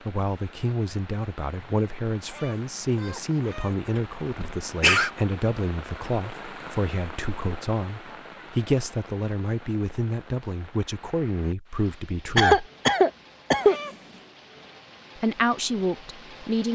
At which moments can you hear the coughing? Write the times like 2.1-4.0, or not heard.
4.0-5.1, 12.3-13.8.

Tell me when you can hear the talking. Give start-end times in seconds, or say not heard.
0.1-12.7, 15.2-16.7.